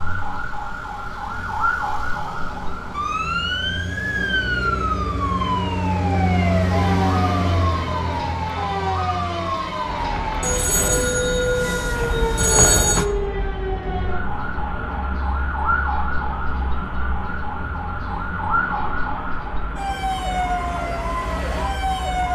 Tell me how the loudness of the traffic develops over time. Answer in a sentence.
The loudness of the traffic goes up, then down.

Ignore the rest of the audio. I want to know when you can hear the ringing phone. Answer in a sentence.
You can hear the ringing phone from 10.4 to 13.1 s.